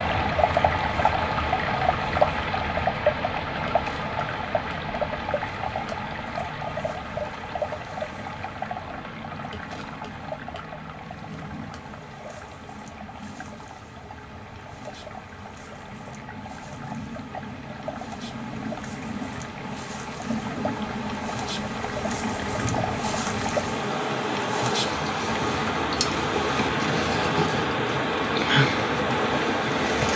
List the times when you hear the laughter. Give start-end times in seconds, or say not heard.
not heard.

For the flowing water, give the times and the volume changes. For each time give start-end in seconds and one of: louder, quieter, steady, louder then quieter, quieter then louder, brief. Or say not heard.
0.0-30.1 quieter then louder.